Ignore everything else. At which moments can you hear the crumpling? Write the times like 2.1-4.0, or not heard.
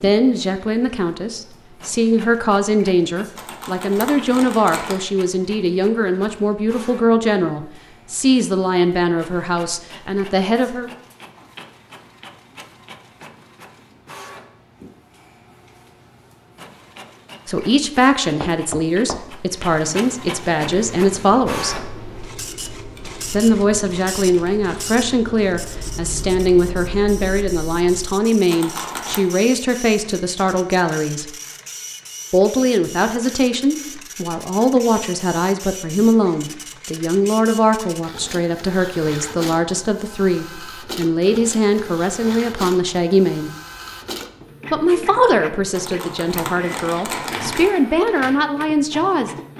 3.4-5.0, 28.5-29.2, 45.7-47.7.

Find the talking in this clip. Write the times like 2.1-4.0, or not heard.
0.0-10.9, 17.4-21.9, 23.3-31.3, 32.3-43.5, 44.7-49.3.